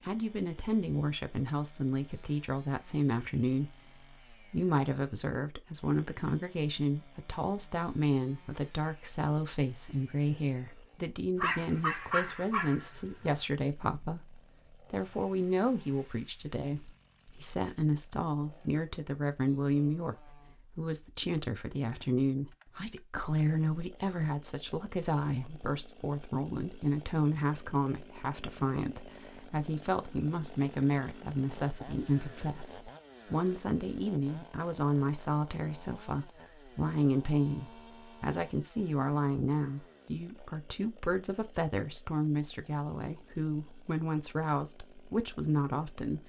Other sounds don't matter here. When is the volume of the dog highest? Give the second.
12 s.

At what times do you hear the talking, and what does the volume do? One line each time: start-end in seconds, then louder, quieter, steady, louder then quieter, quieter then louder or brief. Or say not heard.
0.0-46.2 steady.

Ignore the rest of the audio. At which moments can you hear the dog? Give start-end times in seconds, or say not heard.
11.3-13.4.